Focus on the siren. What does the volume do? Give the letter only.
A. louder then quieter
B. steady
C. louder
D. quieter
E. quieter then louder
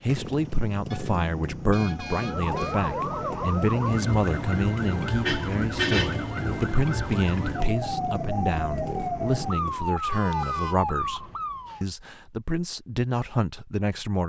B.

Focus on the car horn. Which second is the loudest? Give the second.
6 s.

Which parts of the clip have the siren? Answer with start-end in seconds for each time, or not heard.
2.0-11.8.